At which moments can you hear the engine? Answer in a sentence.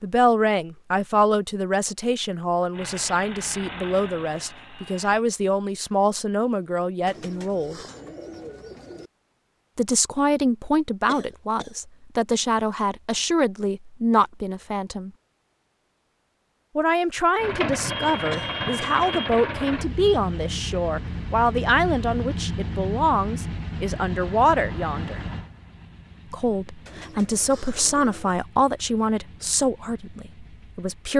You can hear the engine from 2.7 to 5.2 s and from 17.4 to 31.1 s.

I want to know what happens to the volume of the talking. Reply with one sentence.
The volume of the talking stays about the same.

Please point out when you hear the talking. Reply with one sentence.
The talking can be heard from 0.0 to 7.8 s, from 9.8 to 15.1 s, from 16.8 to 25.2 s and from 26.3 to 31.1 s.